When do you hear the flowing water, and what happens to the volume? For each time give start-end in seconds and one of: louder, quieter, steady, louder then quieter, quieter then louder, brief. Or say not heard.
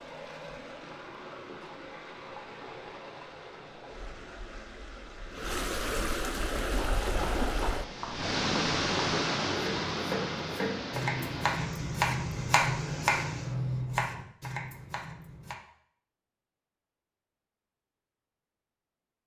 0.0-13.8 louder then quieter.